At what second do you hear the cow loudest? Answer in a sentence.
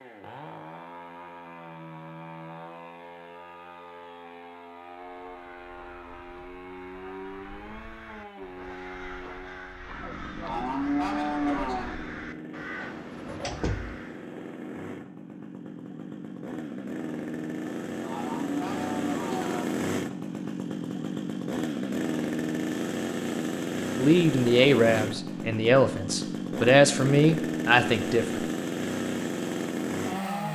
The loudest moment of the cow is at 11 seconds.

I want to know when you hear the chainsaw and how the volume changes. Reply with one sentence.
The chainsaw can be heard from 0.0 to 30.5 s, getting louder.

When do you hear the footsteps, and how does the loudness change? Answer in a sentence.
You can't hear the footsteps here.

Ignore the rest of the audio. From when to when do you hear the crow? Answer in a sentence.
You can hear the crow from 5.2 to 14.3 s.